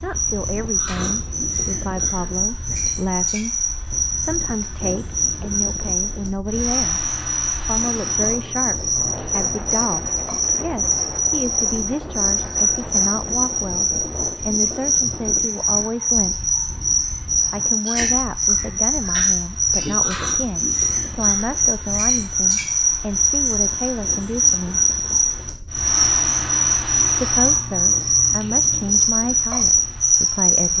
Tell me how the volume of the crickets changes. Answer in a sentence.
The volume of the crickets goes up.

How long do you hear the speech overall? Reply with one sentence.
The speech can be heard for 27 seconds in total.